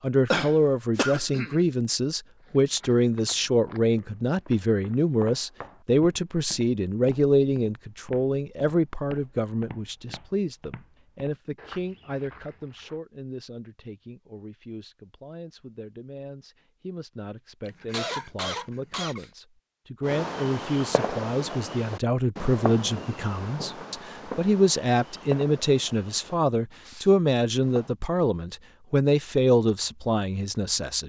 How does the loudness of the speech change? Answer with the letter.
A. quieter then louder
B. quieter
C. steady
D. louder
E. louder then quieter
A.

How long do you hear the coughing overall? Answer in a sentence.
The coughing can be heard for 3 seconds in total.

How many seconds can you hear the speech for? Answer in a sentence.
You can hear the speech for 31 seconds altogether.